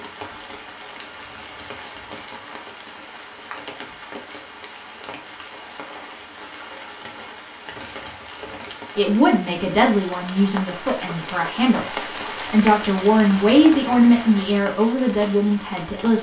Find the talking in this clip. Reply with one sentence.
You can hear the talking from 8.9 to 16.1 s.